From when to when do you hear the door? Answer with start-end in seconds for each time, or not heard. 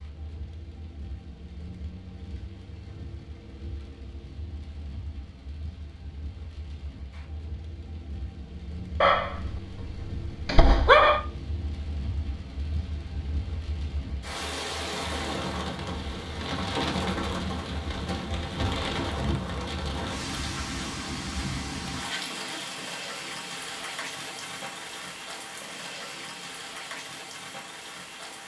not heard.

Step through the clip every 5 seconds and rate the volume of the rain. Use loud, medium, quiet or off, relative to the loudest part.
quiet, quiet, medium, loud, loud, medium.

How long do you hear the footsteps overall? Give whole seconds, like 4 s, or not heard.
not heard.